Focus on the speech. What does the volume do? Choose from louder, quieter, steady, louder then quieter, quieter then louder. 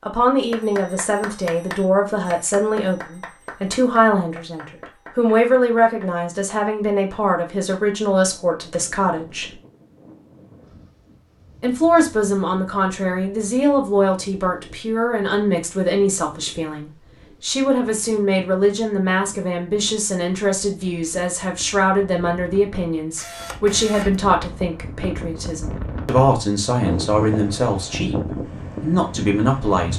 steady.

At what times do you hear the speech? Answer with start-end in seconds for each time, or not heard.
0.0-9.6, 11.6-29.9.